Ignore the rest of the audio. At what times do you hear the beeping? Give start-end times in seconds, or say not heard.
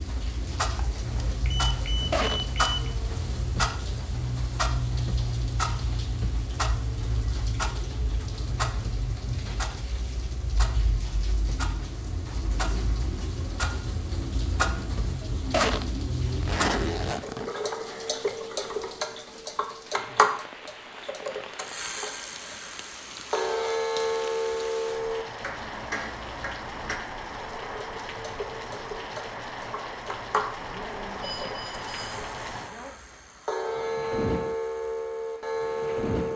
1.4-3.0, 31.2-32.1.